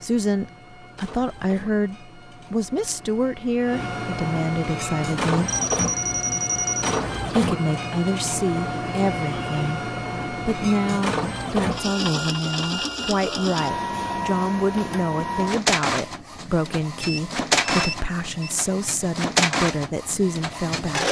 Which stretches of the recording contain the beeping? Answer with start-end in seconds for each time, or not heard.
5.5-7.0, 17.0-18.5.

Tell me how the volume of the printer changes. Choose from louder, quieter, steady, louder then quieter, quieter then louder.
louder.